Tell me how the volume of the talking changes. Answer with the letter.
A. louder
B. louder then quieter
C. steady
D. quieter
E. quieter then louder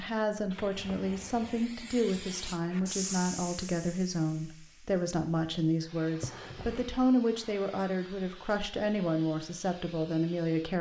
C.